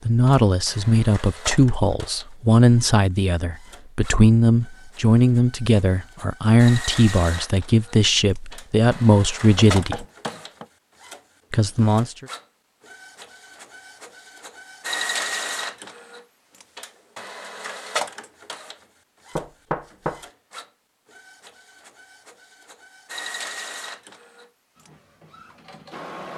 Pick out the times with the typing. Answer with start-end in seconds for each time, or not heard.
not heard.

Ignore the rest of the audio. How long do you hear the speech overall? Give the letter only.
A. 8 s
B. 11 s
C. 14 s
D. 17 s
B.